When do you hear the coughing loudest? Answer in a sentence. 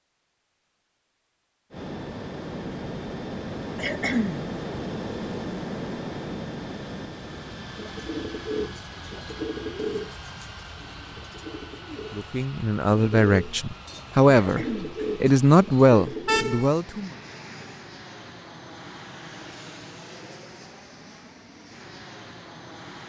The volume of the coughing peaks at 4 seconds.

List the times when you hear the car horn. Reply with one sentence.
The car horn can be heard from 16.2 to 16.7 s.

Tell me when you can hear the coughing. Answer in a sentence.
The coughing can be heard from 3.8 to 4.4 s and from 14.3 to 14.9 s.